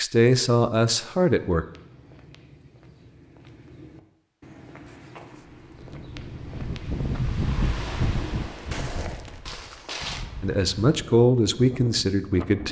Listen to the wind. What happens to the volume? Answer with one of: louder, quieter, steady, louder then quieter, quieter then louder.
quieter.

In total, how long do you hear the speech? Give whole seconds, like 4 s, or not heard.
4 s.